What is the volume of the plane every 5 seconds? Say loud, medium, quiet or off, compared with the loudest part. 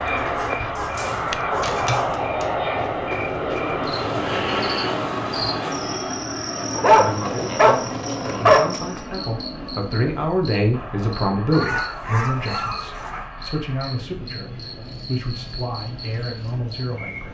loud, medium, quiet, quiet.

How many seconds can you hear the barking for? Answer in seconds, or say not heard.
6 s.